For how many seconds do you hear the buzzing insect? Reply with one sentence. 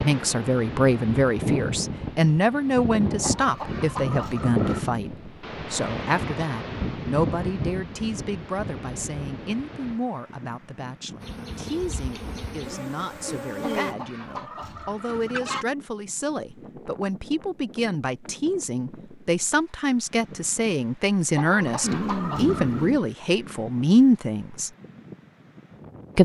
You can hear the buzzing insect for 3 seconds altogether.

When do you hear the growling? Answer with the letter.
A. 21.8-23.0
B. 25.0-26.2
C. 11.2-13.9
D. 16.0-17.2
A.